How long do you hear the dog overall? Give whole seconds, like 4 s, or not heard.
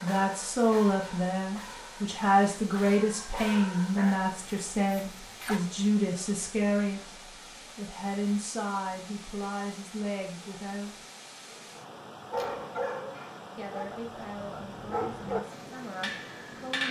10 s.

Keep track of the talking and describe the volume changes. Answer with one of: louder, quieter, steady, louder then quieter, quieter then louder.
quieter.